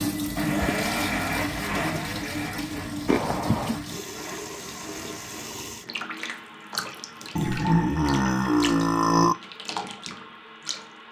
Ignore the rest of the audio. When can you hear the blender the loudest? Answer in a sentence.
The volume of the blender peaks at 1 second.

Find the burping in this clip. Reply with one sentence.
You can hear the burping from 3.0 to 3.8 s and from 7.3 to 9.3 s.